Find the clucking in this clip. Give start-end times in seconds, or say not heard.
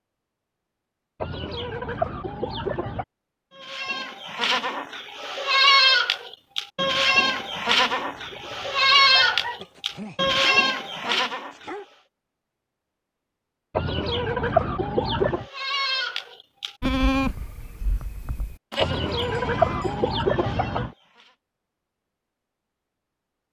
1.2-3.0, 6.9-9.6, 13.8-15.4, 18.8-20.9.